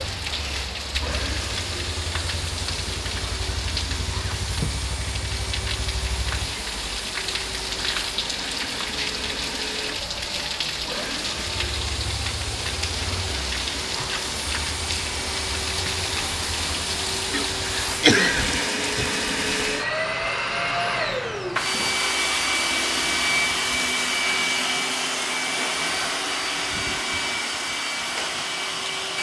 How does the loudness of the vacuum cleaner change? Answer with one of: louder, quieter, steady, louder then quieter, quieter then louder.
louder.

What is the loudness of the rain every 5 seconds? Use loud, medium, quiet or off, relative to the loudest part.
loud, loud, loud, loud, quiet, quiet.